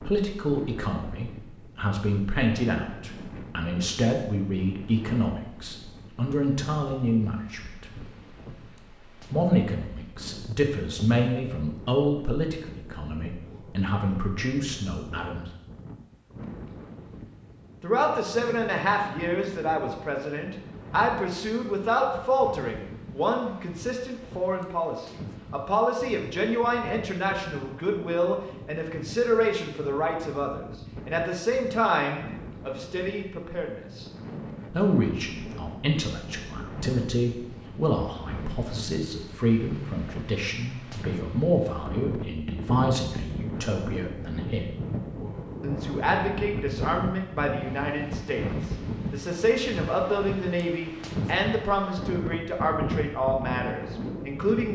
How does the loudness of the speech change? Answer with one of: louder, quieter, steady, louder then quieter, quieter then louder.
steady.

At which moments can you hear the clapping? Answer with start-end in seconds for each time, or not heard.
not heard.